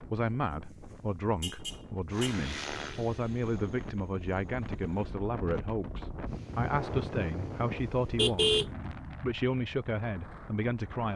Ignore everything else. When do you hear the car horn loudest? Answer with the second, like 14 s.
8 s.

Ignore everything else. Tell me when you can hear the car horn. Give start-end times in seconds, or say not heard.
1.4-2.4, 7.8-8.8.